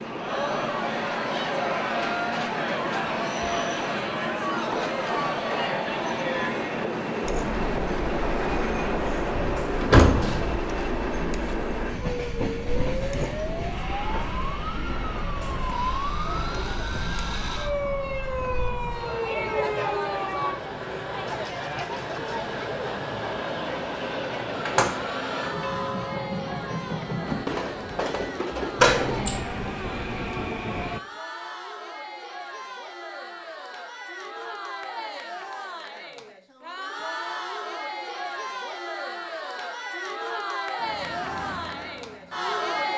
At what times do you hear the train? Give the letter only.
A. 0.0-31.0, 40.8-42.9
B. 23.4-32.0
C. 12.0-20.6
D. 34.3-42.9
A.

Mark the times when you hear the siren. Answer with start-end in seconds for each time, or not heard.
12.0-20.6.